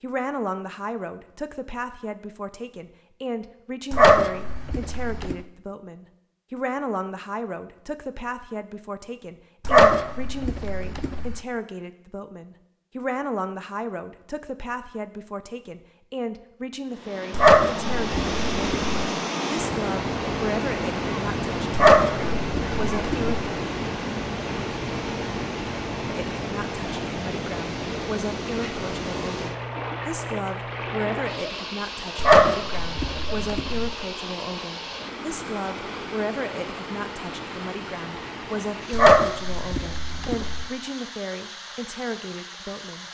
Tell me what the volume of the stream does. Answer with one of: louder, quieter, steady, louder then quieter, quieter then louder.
quieter.